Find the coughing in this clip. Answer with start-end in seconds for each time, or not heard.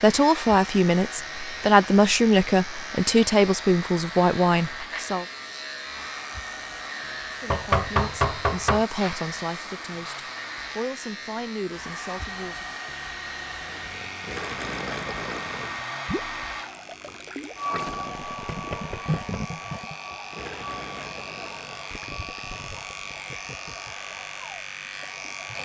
not heard.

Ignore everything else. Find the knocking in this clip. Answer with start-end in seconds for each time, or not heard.
7.5-8.8, 18.1-19.7.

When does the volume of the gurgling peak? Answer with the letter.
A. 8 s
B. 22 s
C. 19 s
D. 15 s
C.